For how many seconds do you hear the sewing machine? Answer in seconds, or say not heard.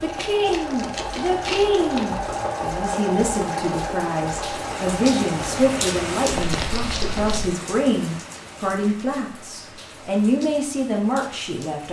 6 s.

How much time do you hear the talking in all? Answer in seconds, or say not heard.
12 s.